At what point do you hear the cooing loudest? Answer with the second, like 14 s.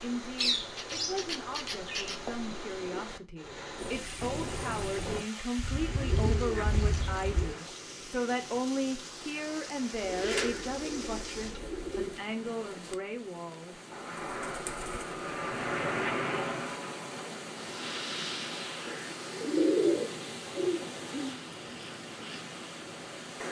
20 s.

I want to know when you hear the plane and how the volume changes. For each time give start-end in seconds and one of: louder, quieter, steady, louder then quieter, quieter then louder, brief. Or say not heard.
3.4-5.2 brief
13.9-23.4 quieter.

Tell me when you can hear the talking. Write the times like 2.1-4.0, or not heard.
0.0-13.8.